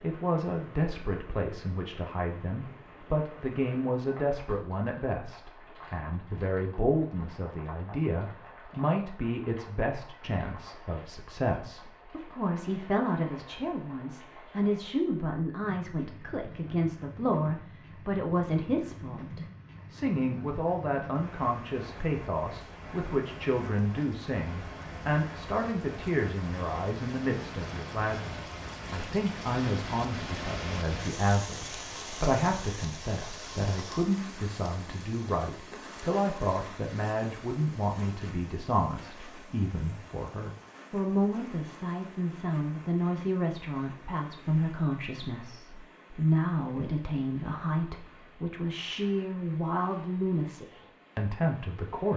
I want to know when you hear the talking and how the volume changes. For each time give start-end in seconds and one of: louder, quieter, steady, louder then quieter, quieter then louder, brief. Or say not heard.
0.0-52.1 steady.